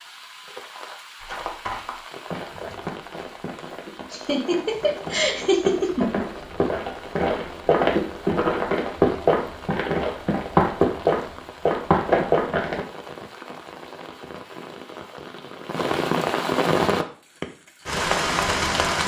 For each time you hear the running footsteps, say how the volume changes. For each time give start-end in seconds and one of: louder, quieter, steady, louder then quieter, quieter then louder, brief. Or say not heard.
1.2-12.8 louder.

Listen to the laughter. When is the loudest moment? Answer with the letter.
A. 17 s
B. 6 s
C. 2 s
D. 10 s
B.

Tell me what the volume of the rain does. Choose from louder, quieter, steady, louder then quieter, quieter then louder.
louder.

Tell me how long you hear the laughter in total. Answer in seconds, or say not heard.
2 s.